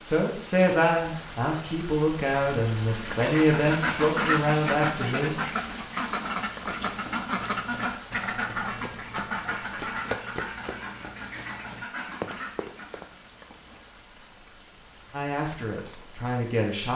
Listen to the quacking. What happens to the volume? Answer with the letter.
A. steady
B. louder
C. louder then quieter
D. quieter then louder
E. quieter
E.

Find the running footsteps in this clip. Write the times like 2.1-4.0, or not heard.
6.8-13.1.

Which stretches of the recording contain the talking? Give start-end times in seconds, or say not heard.
0.1-5.3, 15.1-16.9.